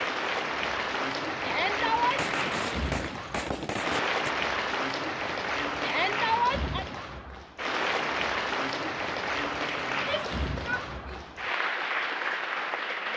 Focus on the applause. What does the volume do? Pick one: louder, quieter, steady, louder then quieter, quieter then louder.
steady.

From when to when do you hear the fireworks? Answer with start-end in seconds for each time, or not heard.
2.1-4.3.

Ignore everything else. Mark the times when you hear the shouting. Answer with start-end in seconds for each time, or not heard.
1.4-2.2, 5.8-6.8, 9.9-11.2.